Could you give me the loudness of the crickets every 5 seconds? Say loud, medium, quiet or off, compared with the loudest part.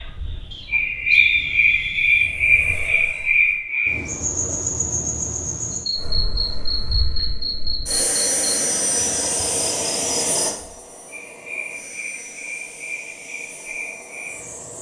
loud, medium, quiet.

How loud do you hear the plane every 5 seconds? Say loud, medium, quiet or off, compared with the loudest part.
quiet, loud, medium.